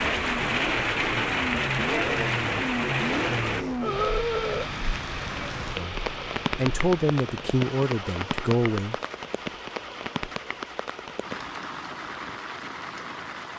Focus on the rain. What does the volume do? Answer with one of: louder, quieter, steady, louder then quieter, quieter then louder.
quieter.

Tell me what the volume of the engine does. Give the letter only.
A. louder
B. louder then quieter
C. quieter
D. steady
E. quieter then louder
C.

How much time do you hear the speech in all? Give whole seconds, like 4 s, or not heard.
3 s.